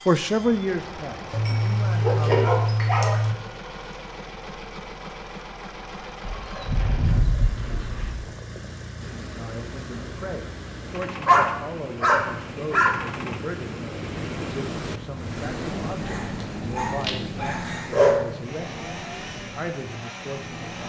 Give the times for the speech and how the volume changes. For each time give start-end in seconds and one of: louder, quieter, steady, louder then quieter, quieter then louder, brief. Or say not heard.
0.1-2.5 brief
9.3-20.8 steady.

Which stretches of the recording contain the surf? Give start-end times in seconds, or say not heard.
8.9-20.8.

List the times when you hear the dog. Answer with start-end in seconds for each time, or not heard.
1.3-3.4, 6.2-8.2, 11.2-13.0, 16.0-18.2.